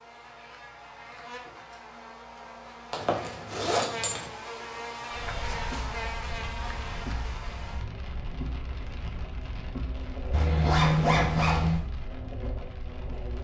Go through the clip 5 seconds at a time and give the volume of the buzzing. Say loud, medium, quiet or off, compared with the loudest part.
loud, loud, medium.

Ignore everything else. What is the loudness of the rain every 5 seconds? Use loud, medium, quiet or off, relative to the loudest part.
off, loud, loud.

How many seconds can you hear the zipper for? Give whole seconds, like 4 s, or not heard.
3 s.